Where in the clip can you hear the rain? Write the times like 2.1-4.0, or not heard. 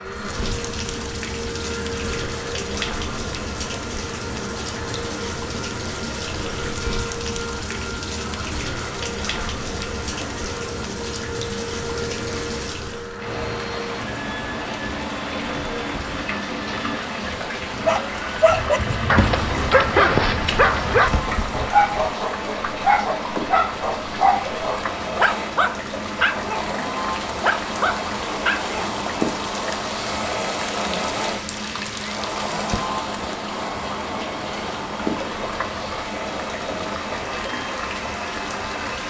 0.0-39.0.